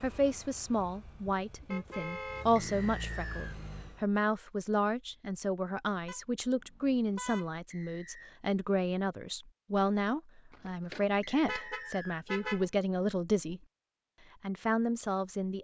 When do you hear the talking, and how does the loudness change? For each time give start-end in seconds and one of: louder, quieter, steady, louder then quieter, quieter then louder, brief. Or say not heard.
0.0-13.6 steady
14.4-15.5 brief.